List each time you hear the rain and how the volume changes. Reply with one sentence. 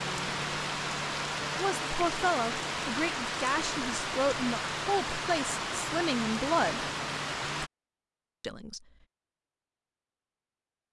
The rain can be heard from 0.0 to 7.7 s, at a steady volume.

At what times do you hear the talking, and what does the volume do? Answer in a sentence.
The talking can be heard from 1.6 to 6.8 s, at a steady volume; and briefly from 8.4 to 8.8 s.